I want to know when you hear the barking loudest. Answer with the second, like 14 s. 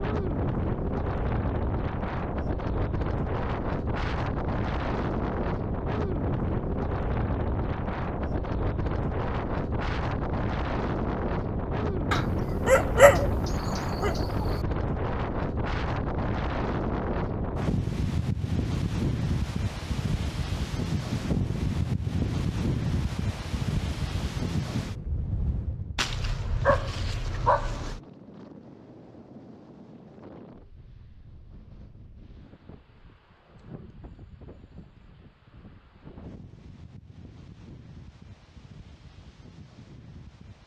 13 s.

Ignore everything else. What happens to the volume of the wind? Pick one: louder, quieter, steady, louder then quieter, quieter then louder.
quieter.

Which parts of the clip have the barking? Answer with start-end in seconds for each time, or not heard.
12.1-14.6, 25.9-28.0.